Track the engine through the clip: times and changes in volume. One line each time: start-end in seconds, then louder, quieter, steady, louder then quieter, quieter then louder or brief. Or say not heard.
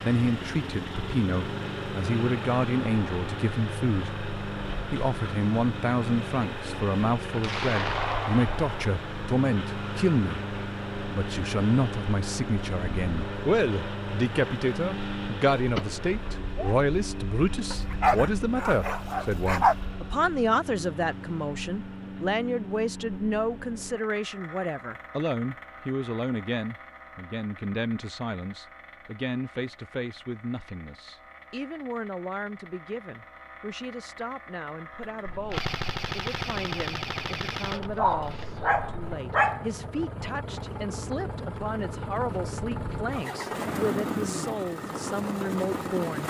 0.0-46.2 quieter then louder.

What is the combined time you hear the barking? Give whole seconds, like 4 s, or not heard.
4 s.